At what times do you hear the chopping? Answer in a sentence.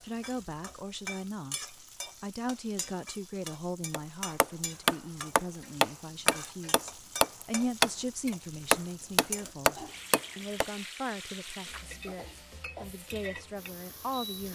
You can hear the chopping from 3.9 to 10.7 s.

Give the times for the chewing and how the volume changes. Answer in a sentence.
The chewing can't be heard in this clip.